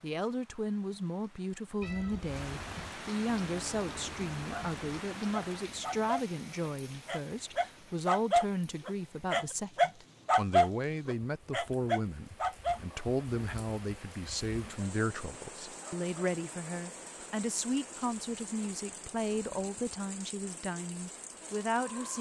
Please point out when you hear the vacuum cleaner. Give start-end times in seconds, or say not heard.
not heard.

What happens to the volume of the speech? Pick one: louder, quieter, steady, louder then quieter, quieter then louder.
steady.